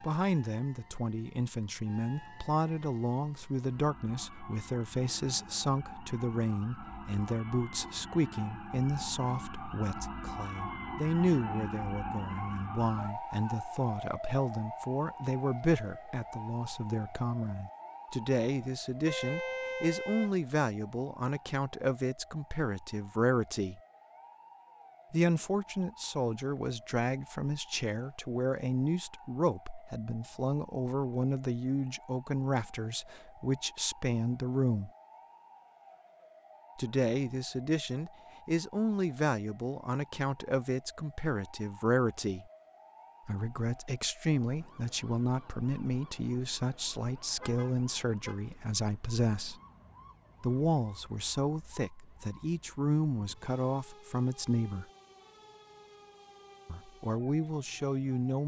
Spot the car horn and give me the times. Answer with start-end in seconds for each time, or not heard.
19.1-20.3, 47.4-48.5.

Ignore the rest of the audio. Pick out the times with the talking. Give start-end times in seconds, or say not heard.
0.0-23.8, 25.1-34.9, 36.8-42.5, 43.2-49.5, 50.4-54.9, 56.6-58.4.